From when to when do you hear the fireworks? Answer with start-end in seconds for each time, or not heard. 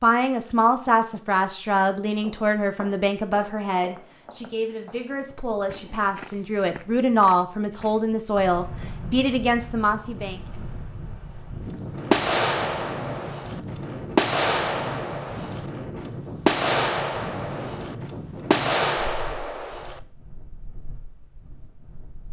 12.1-15.7, 16.4-20.0.